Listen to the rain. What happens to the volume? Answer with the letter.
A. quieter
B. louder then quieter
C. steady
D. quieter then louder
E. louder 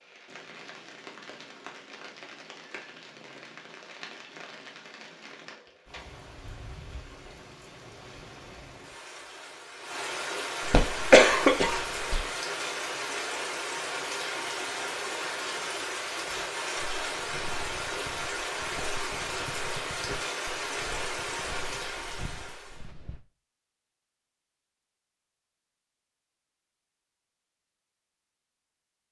E.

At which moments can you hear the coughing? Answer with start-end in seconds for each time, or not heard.
10.7-12.2.